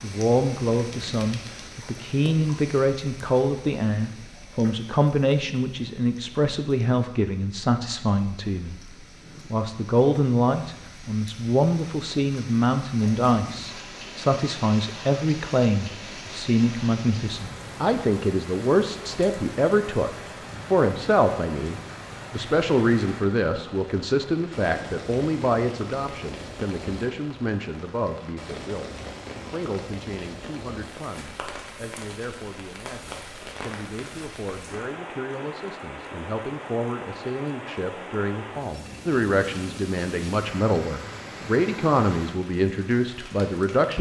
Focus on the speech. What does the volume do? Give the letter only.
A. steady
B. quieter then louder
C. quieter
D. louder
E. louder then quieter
B.